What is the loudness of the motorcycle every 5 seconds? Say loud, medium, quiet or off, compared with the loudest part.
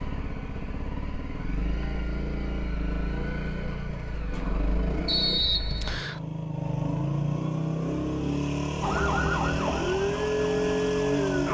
medium, loud, loud.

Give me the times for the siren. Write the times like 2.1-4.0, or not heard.
8.8-11.4.